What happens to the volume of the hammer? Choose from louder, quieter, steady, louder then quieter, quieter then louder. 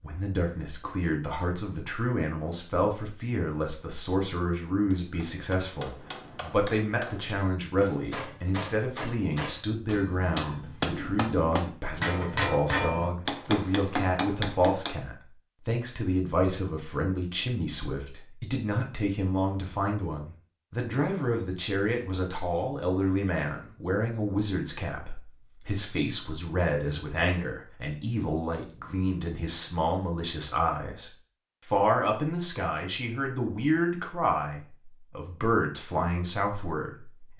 louder.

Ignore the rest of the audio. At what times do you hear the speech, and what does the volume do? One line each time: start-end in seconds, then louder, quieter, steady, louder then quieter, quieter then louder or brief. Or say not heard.
0.0-37.3 steady.